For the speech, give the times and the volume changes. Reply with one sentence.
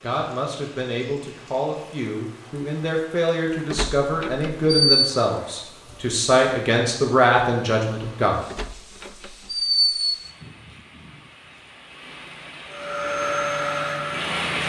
You can hear the speech from 0.0 to 8.4 s, getting louder.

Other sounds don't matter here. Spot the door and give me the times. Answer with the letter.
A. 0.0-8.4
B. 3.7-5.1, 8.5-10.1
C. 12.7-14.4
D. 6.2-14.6
B.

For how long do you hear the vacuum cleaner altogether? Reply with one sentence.
The vacuum cleaner can be heard for 2 seconds in total.